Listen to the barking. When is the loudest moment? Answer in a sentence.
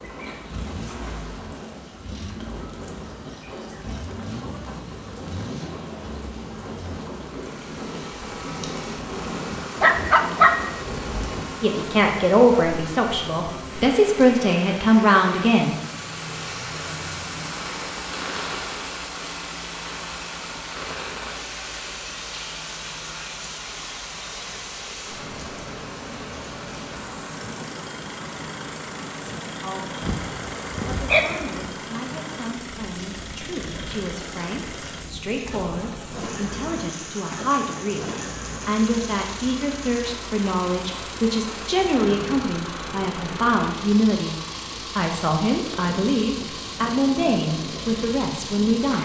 The volume of the barking peaks at 10 seconds.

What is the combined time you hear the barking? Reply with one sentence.
You can hear the barking for 3 seconds altogether.